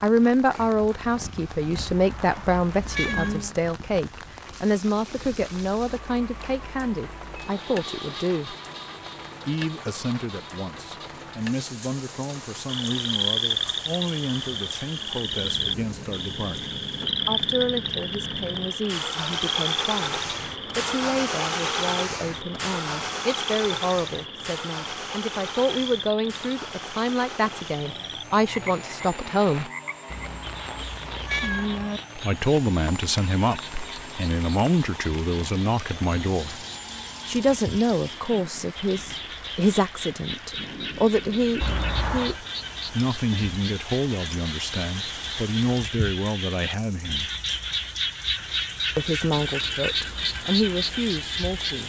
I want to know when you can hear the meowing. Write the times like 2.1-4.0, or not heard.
1.8-3.5, 30.1-32.0, 41.6-42.4.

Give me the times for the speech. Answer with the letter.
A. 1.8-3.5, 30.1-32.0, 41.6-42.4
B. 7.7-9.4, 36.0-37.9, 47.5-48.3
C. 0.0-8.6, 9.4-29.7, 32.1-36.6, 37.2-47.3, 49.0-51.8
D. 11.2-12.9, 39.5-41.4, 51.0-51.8
C.